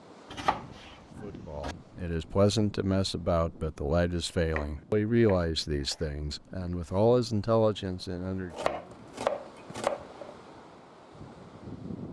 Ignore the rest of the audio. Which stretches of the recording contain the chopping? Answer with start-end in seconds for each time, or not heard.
0.3-1.8, 4.5-6.0, 8.5-10.3.